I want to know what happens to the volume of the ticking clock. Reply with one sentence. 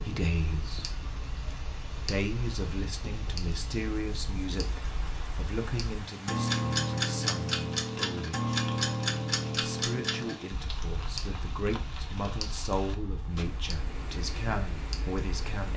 The loudness of the ticking clock goes up, then down.